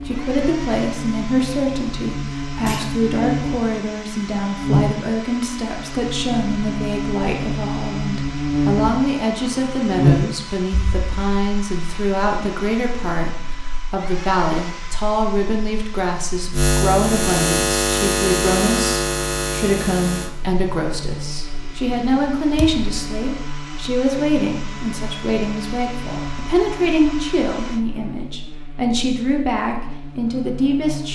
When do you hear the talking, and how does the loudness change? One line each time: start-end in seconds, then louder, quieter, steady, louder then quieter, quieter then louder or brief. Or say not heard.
0.1-31.1 steady.